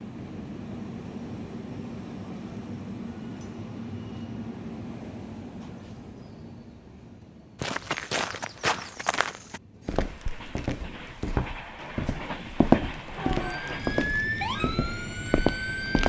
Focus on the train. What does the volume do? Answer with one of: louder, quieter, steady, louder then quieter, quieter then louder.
quieter then louder.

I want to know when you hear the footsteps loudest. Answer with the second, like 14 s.
13 s.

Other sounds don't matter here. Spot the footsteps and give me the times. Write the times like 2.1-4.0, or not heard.
7.6-16.0.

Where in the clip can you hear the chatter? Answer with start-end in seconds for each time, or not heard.
not heard.